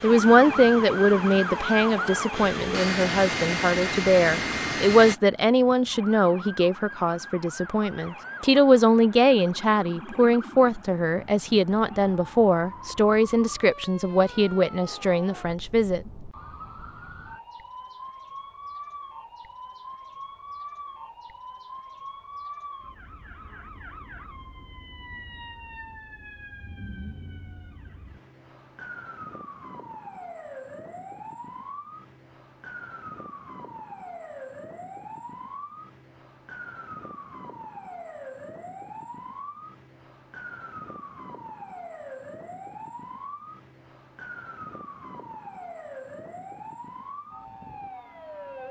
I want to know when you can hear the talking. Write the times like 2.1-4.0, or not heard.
0.0-16.1.